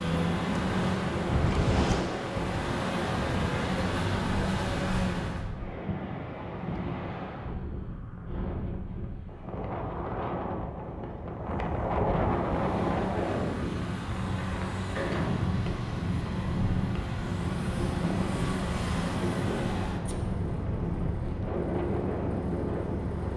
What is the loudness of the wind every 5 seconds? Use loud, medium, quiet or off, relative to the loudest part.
loud, medium, loud, loud, loud.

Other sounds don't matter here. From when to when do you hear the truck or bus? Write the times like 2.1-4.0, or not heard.
0.0-5.5, 12.2-23.3.